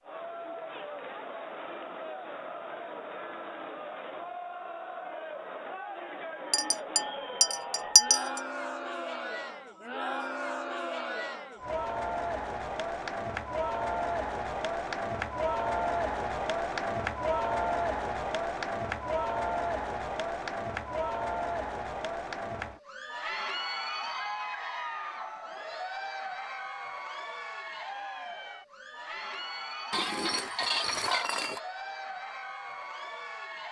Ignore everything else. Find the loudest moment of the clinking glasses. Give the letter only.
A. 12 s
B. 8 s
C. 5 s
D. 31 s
B.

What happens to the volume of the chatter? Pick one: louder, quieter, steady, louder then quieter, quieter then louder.
louder then quieter.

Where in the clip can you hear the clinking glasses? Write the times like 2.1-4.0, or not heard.
6.5-8.4, 29.9-31.6.